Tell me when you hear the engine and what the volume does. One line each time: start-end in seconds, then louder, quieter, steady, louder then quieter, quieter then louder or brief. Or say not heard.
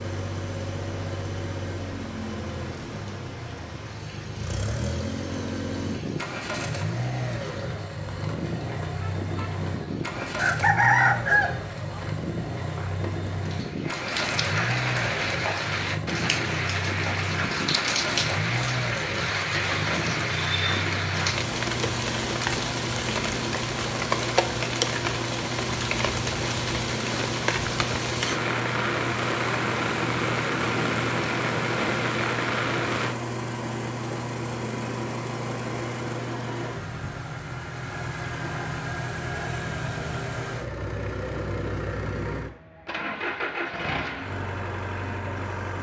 0.0-45.7 steady.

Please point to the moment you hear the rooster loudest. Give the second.
11 s.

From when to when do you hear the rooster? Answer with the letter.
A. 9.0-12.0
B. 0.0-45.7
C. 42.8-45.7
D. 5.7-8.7
A.